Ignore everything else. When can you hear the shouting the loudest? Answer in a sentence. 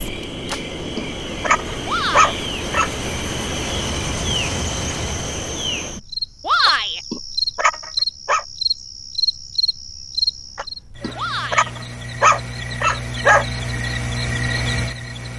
The volume of the shouting peaks at 7 seconds.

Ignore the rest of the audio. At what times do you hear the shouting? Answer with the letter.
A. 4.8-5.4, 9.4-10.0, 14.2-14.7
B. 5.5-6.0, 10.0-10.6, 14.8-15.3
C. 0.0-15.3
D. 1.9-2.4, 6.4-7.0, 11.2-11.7
D.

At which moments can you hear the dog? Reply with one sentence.
The dog can be heard from 0.5 to 2.9 s, from 6.7 to 8.4 s and from 10.6 to 13.4 s.